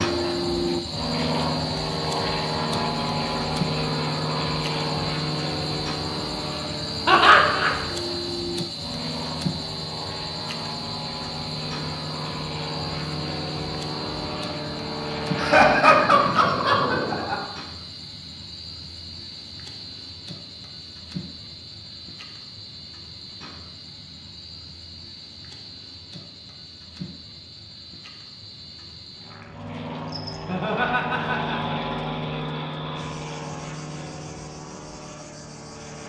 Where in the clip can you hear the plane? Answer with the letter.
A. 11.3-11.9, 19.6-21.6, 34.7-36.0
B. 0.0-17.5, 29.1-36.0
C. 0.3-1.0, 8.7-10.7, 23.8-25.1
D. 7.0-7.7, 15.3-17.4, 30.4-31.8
B.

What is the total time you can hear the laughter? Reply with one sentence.
You can hear the laughter for 4 seconds altogether.